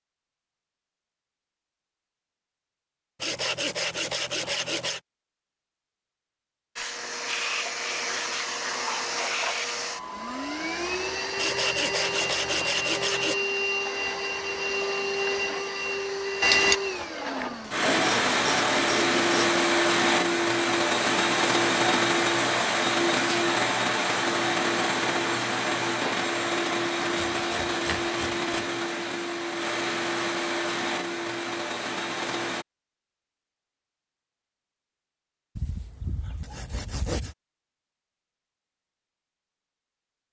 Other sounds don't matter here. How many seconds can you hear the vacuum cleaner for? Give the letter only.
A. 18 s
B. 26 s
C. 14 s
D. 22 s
B.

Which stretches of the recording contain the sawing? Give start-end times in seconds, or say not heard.
3.2-5.0, 11.3-13.3, 17.4-19.6, 27.0-28.8, 35.5-37.4.